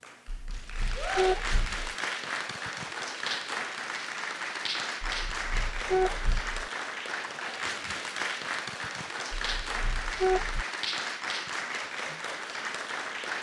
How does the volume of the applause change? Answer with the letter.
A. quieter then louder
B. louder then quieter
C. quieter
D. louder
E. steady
E.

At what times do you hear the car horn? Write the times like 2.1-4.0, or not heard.
0.2-1.8, 5.0-6.5, 9.3-10.7.